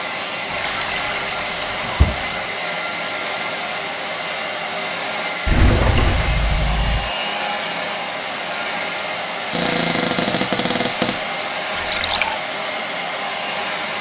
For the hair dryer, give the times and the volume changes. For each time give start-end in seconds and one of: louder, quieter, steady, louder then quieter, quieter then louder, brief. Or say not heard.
0.0-13.9 steady.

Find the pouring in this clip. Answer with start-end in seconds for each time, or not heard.
0.5-2.5, 5.5-7.1, 11.8-12.3.